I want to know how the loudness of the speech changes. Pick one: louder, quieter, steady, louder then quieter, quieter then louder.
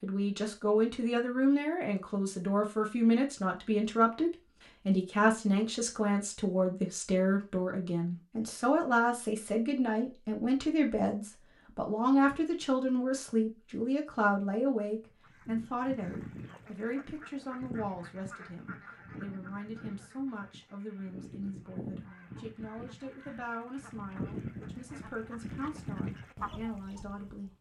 quieter.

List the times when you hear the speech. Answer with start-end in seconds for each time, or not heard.
0.0-27.5.